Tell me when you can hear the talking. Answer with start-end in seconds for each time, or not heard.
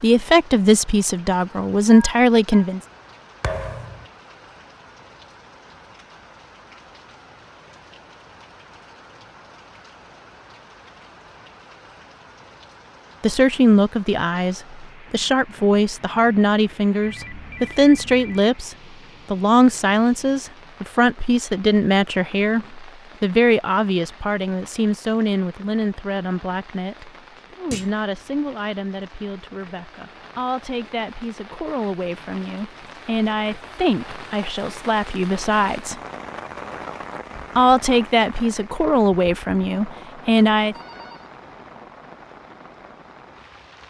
0.0-2.8, 13.2-36.0, 37.5-40.8.